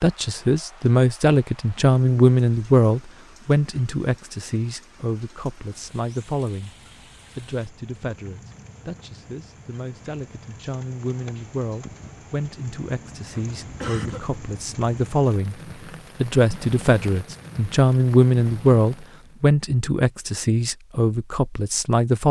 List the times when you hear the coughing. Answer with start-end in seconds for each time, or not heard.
13.3-14.4.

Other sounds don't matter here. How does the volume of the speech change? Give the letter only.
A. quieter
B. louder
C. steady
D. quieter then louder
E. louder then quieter
D.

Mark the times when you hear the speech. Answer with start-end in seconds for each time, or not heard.
0.0-6.8, 7.3-15.6, 16.2-22.2.